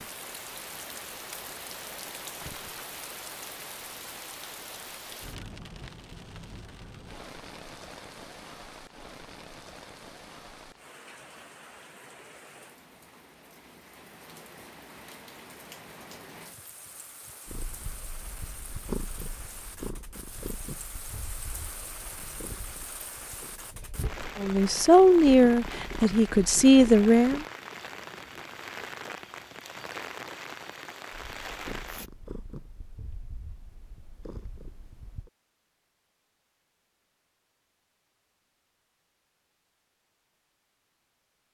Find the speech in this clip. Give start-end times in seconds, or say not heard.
24.4-27.4.